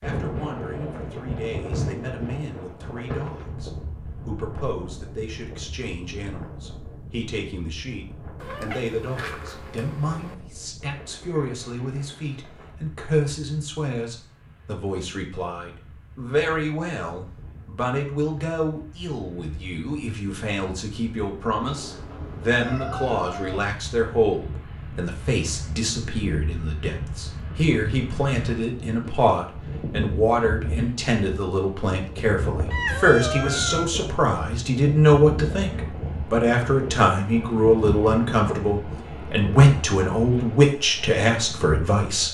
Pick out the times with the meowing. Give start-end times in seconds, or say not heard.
8.4-10.3, 21.6-23.6, 32.7-33.9.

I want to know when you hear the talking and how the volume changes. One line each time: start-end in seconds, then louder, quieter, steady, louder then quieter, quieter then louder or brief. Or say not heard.
0.0-42.2 louder.